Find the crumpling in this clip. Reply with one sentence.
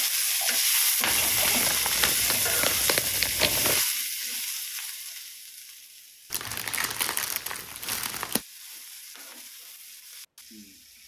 The crumpling can be heard from 1.0 to 3.9 s and from 6.3 to 8.4 s.